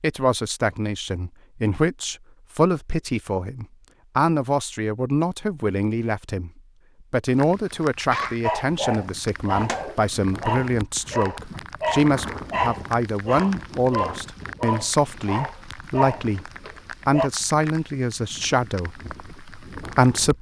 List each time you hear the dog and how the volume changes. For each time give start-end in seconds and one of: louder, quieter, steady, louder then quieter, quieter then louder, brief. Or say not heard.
8.1-17.3 steady.